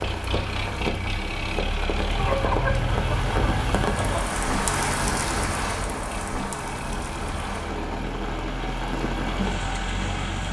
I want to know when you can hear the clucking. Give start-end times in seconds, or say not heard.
2.1-4.2.